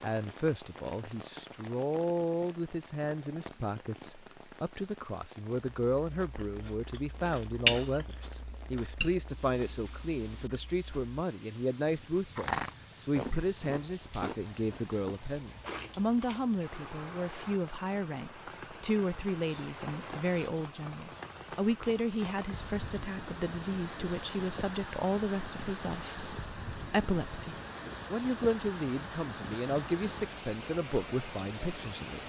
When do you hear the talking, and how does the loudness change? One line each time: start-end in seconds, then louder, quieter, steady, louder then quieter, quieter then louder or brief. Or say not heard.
0.0-32.2 steady.